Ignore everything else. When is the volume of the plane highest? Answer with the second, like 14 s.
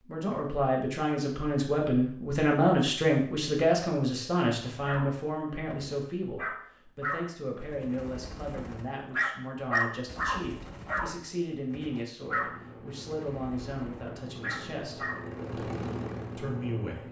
16 s.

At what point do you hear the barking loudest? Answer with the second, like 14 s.
10 s.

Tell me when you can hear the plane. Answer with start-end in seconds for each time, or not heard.
12.2-17.0.